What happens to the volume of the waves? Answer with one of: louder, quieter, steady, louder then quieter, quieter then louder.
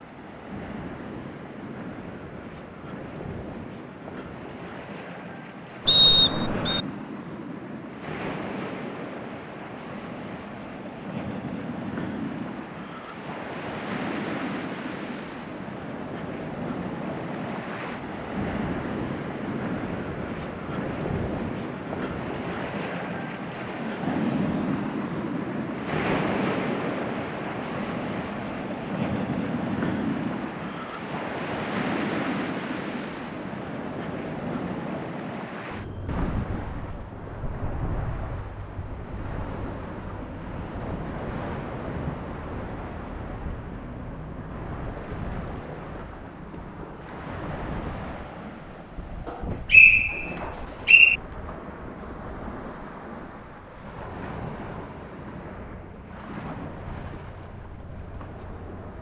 louder then quieter.